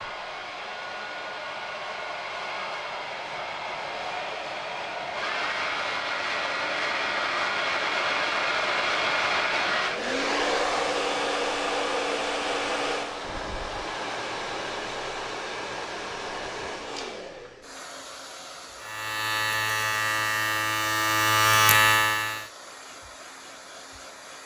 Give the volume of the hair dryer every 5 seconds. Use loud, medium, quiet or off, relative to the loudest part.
medium, loud, loud, medium, quiet.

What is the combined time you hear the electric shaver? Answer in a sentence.
The electric shaver can be heard for 4 seconds in total.